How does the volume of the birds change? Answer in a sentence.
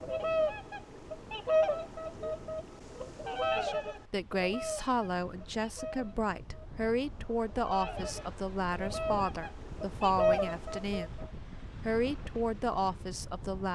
The loudness of the birds goes down, then up.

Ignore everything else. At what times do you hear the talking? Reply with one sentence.
The talking can be heard from 3.5 to 11.2 s and from 11.8 to 13.7 s.